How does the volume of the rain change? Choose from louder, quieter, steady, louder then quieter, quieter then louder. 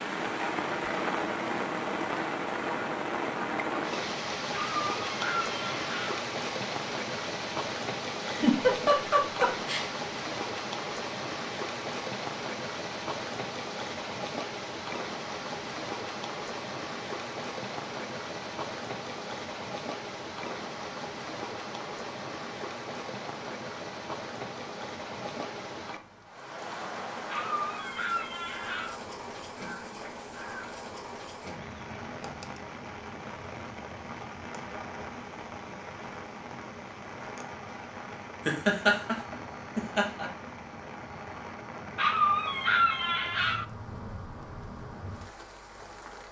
quieter.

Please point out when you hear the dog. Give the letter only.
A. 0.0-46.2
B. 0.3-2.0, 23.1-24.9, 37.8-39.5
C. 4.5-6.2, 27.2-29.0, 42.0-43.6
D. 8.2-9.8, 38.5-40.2
C.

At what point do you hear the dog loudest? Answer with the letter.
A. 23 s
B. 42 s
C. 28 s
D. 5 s
B.